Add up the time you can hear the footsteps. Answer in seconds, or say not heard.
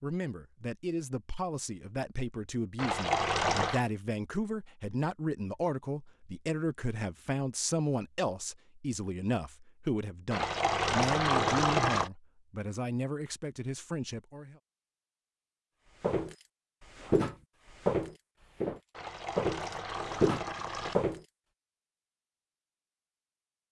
5 s.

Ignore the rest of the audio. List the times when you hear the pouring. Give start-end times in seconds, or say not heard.
2.8-3.8, 10.3-12.1, 18.9-20.9.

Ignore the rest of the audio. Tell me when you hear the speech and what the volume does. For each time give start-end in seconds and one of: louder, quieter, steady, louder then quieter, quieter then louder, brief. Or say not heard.
0.0-14.6 steady.